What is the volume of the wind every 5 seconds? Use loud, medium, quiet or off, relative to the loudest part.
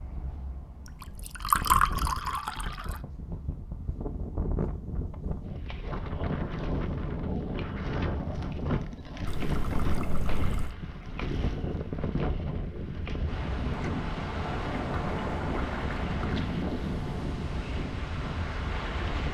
medium, loud, loud, loud.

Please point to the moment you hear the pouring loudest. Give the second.
2 s.